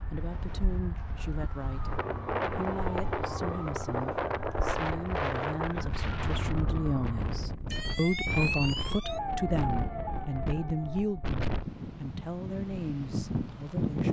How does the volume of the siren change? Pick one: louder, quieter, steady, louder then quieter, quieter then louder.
louder.